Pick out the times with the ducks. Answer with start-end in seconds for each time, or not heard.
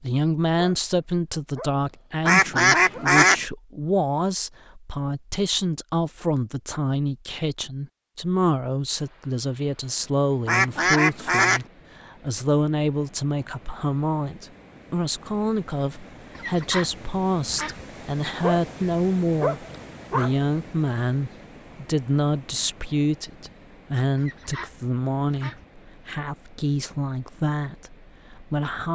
2.2-3.4, 10.4-11.7, 16.4-17.9, 24.1-25.6.